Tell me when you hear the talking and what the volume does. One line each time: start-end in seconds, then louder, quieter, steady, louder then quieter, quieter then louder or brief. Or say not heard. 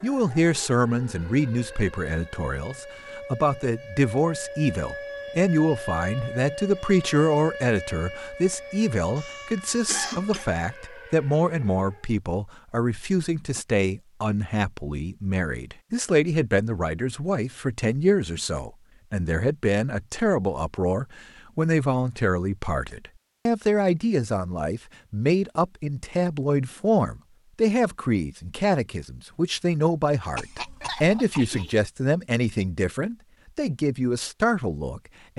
0.0-35.3 steady.